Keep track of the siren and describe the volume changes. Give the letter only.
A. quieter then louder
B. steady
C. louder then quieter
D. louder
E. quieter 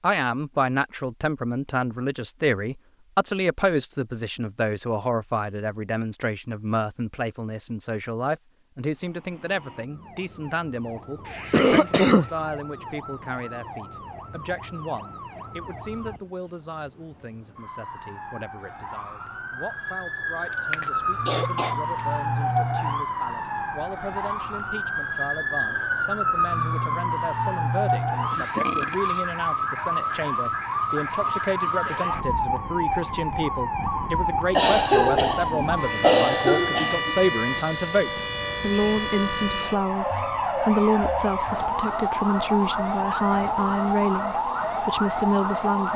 D.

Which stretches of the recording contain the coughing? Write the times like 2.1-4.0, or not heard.
11.2-12.3, 20.7-22.0, 34.5-37.1.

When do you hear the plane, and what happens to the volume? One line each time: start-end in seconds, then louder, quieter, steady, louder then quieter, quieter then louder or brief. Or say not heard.
not heard.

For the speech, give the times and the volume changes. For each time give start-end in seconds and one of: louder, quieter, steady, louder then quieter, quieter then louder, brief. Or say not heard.
0.0-45.9 quieter then louder.